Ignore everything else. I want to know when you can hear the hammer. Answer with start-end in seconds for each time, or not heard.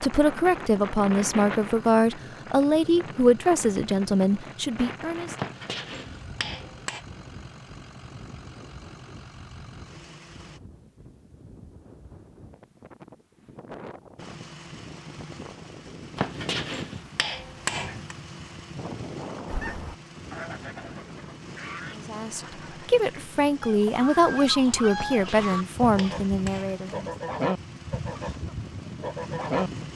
5.3-7.0, 16.1-18.1, 24.9-26.8.